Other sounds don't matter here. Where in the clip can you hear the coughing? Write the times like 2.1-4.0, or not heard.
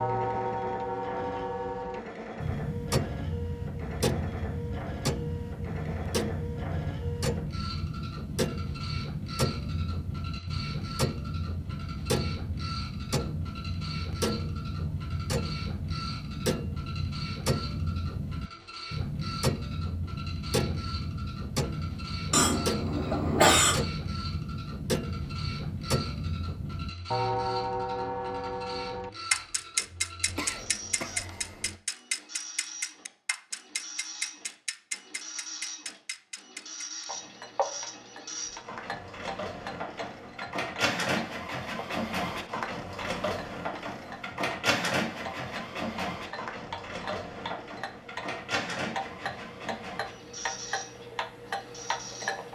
22.3-23.9, 30.2-31.8.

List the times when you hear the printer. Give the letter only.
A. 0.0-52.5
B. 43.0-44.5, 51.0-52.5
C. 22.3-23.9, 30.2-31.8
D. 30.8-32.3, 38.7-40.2
A.